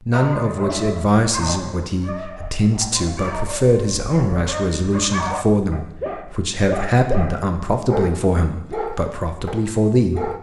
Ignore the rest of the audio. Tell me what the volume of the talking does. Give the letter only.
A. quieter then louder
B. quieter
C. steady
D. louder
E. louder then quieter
C.